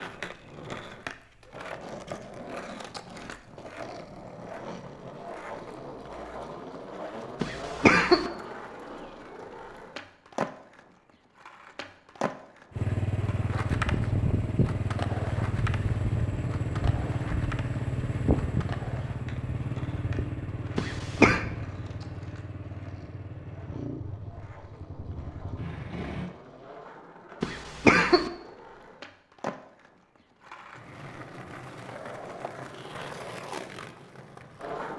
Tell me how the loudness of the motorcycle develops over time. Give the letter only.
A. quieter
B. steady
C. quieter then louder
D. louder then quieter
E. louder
A.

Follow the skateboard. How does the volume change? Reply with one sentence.
The loudness of the skateboard goes down, then up.